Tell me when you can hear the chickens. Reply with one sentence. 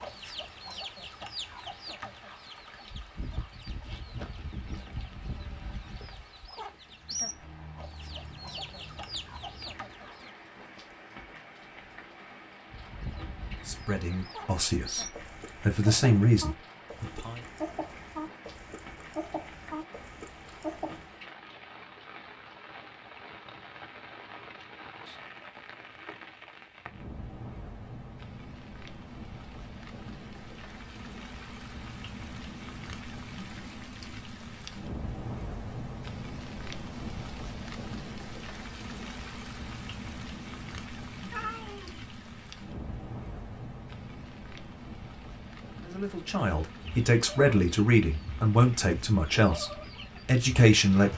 The chickens can be heard from 0.0 to 10.3 s, from 12.7 to 21.1 s and from 46.8 to 51.1 s.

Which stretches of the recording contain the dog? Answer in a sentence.
The dog can't be heard in this clip.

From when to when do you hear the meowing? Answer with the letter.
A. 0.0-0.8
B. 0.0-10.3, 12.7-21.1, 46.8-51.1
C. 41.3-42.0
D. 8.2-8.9
C.